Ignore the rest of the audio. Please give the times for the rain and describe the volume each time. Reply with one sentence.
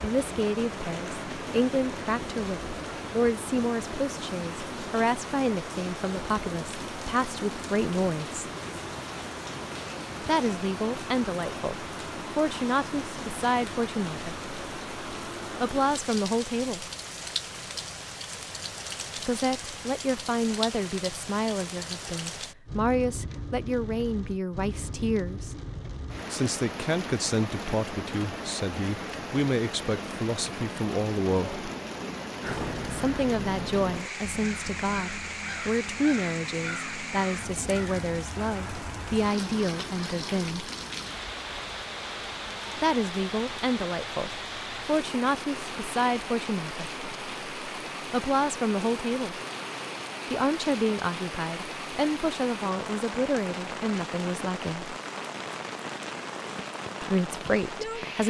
The rain can be heard from 0.0 to 58.2 s, at a steady volume.